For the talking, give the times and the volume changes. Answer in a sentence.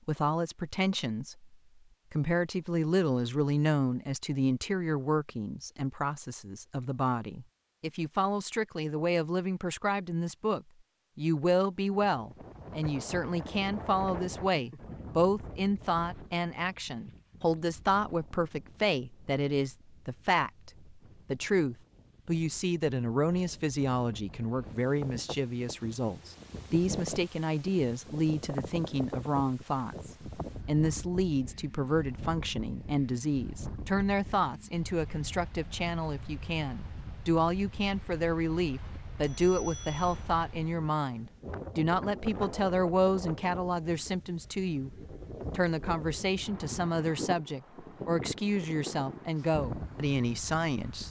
You can hear the talking from 0.1 to 51.0 s, at a steady volume.